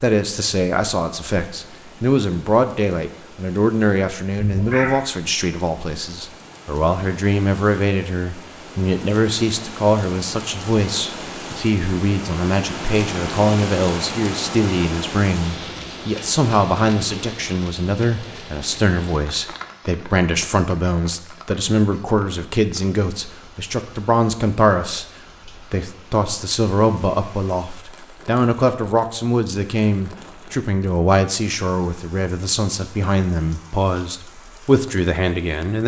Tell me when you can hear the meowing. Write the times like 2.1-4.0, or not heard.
4.3-4.9.